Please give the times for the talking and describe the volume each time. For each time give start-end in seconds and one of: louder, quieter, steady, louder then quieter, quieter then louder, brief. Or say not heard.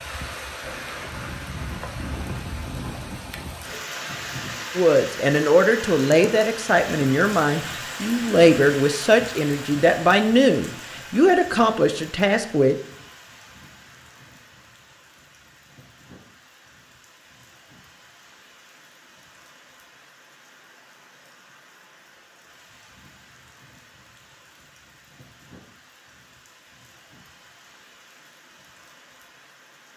4.8-12.8 steady.